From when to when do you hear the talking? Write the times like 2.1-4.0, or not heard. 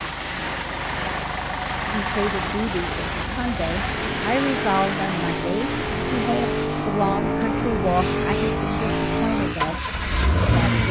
1.9-10.8.